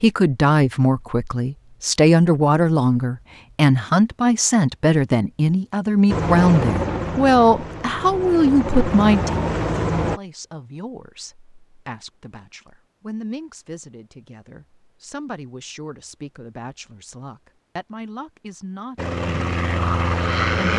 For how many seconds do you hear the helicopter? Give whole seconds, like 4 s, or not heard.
6 s.